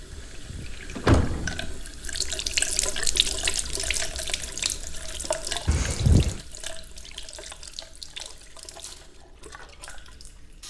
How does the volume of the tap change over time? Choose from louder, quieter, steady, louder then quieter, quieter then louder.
louder then quieter.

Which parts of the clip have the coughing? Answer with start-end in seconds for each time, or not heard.
not heard.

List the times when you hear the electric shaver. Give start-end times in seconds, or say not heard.
not heard.